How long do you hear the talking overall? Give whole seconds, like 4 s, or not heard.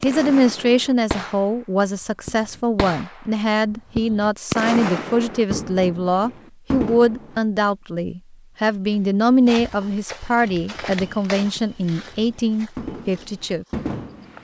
14 s.